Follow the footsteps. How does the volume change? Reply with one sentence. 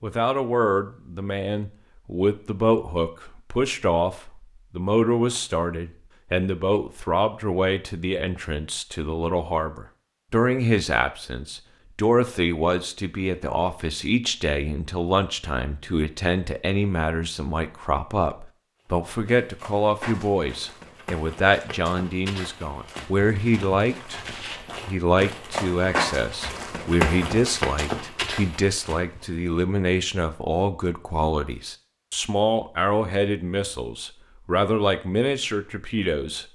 The loudness of the footsteps goes up.